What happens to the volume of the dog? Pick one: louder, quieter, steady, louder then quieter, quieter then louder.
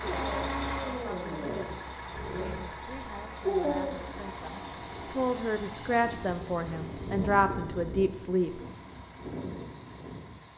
quieter then louder.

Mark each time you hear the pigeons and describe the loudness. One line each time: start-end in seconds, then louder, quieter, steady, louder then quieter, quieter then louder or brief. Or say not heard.
not heard.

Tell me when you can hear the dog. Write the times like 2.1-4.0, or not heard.
0.0-4.0.